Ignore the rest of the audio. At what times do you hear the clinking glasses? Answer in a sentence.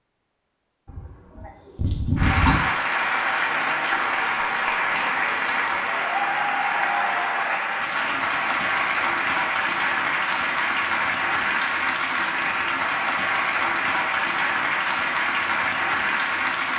You can't hear the clinking glasses here.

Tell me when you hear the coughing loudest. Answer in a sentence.
The loudest moment of the coughing is at 2 seconds.